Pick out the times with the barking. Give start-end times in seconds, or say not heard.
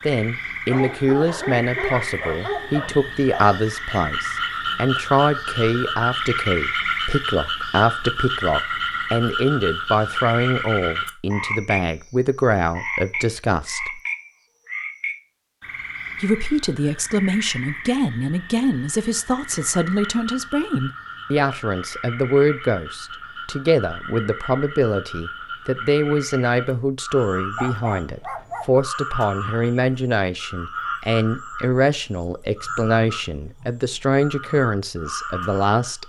0.7-3.6, 27.6-28.7.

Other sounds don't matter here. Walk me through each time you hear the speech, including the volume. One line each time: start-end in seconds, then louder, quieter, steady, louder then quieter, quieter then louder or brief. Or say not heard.
0.1-14.0 steady
16.2-36.0 steady.